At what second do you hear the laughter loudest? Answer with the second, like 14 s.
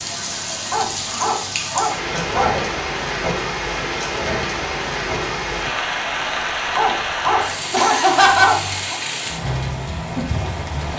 8 s.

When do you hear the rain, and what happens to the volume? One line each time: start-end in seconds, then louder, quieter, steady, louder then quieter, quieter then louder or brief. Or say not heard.
0.0-10.9 steady.